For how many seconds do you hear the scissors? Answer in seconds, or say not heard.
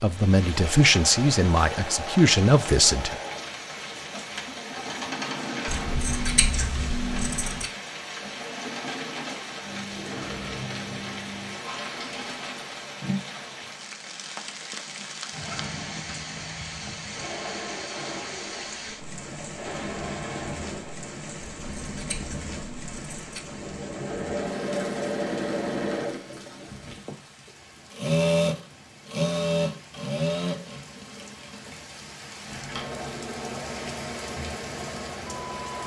4 s.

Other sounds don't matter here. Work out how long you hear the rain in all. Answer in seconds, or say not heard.
36 s.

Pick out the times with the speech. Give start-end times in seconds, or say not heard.
0.0-3.2.